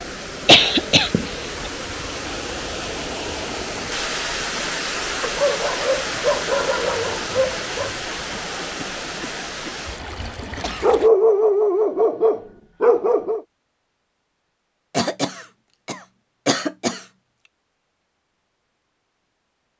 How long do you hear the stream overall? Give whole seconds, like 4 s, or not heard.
11 s.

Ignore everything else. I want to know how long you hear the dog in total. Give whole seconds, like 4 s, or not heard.
5 s.